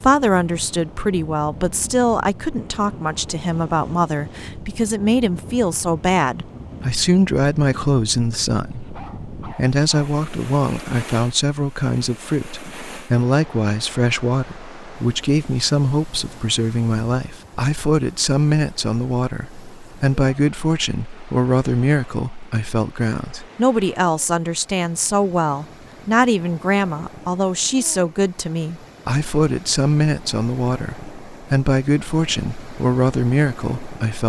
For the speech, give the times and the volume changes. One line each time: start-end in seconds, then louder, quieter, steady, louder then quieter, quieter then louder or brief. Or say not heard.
0.0-34.2 steady.